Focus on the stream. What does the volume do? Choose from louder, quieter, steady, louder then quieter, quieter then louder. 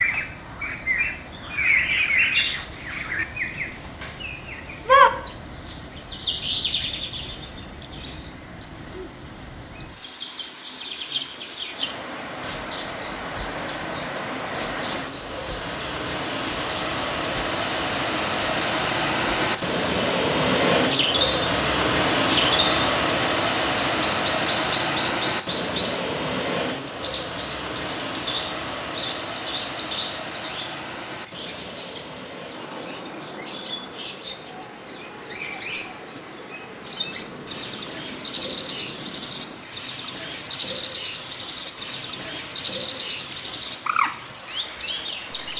louder then quieter.